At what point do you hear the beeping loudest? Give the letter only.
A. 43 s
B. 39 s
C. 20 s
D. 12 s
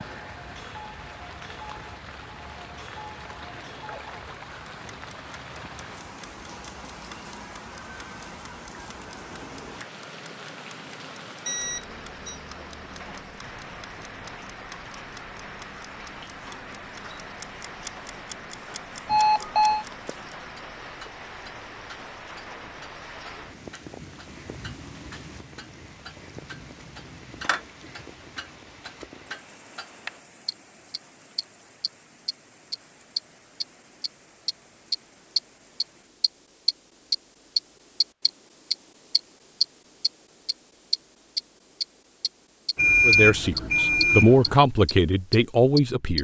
A.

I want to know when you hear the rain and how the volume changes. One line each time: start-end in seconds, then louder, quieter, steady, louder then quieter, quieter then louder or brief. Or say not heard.
0.0-36.1 quieter.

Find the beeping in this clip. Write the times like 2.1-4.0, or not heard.
11.4-12.4, 19.1-19.9, 42.8-44.5.